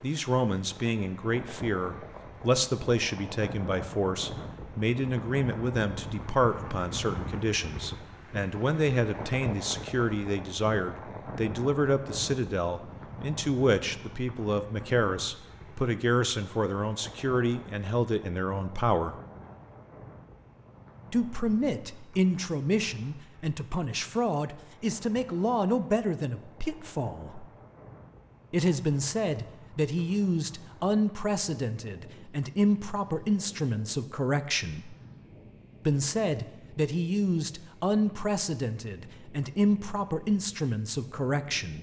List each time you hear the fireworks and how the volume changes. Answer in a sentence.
You can't hear the fireworks here.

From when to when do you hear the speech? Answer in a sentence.
The speech can be heard from 0.0 to 19.1 s, from 21.1 to 27.4 s, from 28.5 to 35.0 s and from 35.9 to 41.7 s.